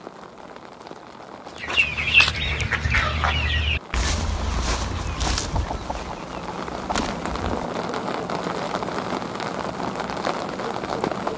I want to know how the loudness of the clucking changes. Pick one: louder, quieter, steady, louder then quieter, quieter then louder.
quieter.